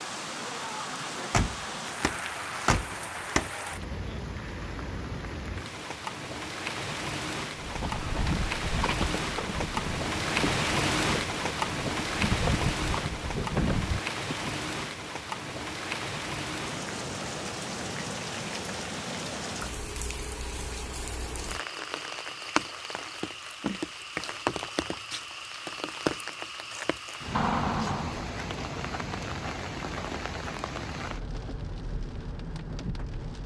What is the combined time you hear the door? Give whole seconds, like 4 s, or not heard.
4 s.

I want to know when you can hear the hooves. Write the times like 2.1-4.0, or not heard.
7.5-14.6.